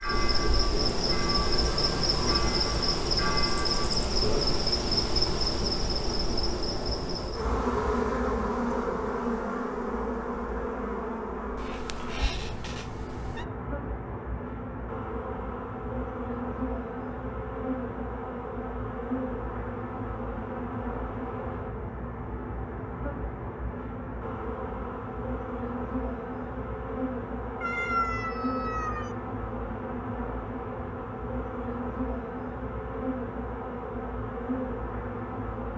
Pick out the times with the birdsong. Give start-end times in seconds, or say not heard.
not heard.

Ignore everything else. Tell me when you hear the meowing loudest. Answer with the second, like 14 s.
28 s.